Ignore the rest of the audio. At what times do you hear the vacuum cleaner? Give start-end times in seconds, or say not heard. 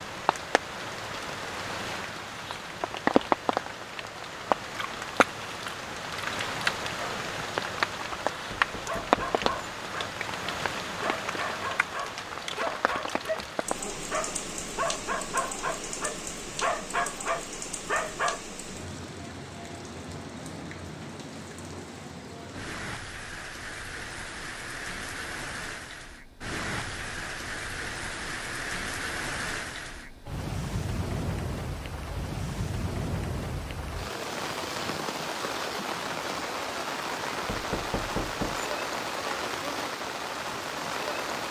not heard.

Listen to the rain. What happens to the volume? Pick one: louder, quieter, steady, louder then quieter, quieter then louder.
quieter then louder.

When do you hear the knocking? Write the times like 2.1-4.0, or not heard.
8.5-9.7, 37.5-38.7.